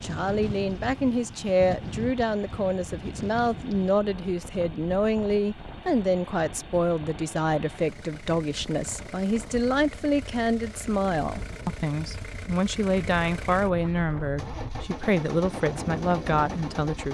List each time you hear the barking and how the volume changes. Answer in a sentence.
You can't hear the barking here.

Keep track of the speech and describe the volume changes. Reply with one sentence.
The volume of the speech stays about the same.